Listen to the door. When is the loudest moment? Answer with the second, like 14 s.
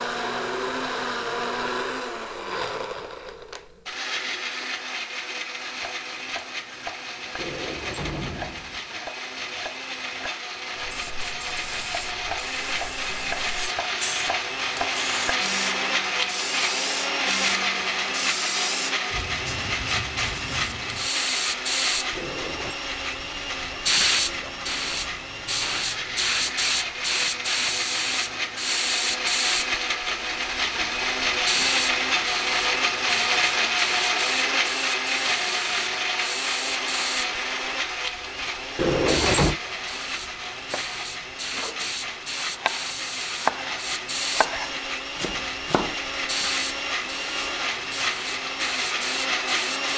39 s.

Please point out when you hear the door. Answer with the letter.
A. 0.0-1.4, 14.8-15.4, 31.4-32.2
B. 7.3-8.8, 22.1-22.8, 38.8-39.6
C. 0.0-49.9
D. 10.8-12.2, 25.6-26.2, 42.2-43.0
B.